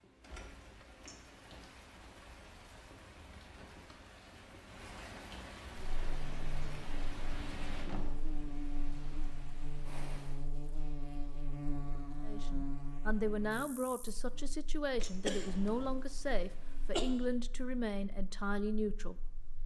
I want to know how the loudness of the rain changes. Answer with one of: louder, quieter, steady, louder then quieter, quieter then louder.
louder then quieter.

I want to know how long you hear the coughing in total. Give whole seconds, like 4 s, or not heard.
2 s.